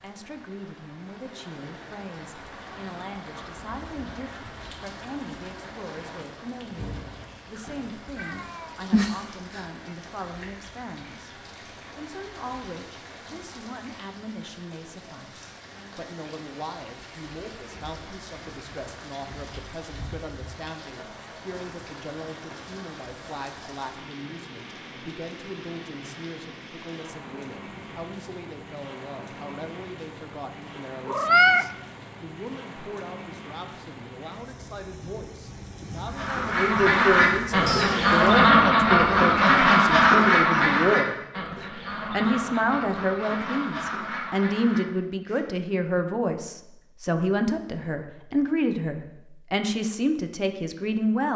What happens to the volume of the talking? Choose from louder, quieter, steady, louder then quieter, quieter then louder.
louder.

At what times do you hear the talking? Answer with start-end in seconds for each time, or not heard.
0.0-51.3.